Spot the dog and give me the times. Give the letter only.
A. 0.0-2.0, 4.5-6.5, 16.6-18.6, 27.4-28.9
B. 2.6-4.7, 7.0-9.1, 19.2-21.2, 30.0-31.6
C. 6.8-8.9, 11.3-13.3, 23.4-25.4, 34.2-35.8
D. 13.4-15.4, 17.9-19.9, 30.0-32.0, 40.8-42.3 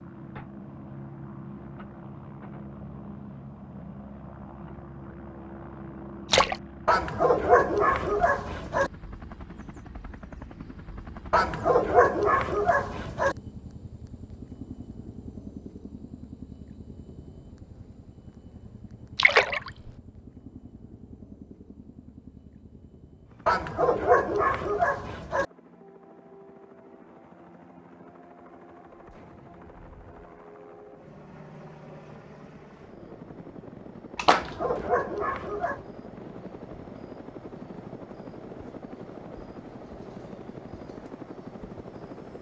C.